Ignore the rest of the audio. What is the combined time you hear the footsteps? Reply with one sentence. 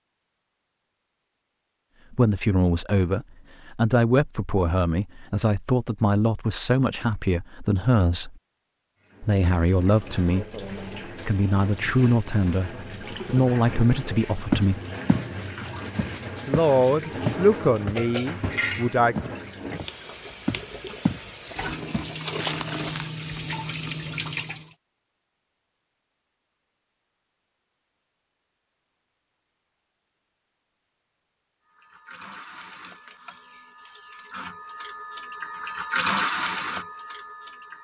You can hear the footsteps for 7 seconds altogether.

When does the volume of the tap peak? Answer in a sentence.
The loudest moment of the tap is at 36 seconds.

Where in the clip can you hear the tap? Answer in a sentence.
You can hear the tap from 9.1 to 24.8 s and from 31.7 to 37.7 s.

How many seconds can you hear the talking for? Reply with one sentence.
You can hear the talking for 15 seconds altogether.